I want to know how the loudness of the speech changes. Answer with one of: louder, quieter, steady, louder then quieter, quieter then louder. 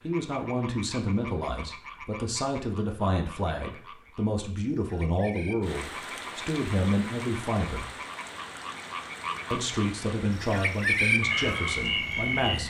steady.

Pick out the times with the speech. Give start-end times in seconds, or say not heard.
0.0-8.0, 9.5-12.6.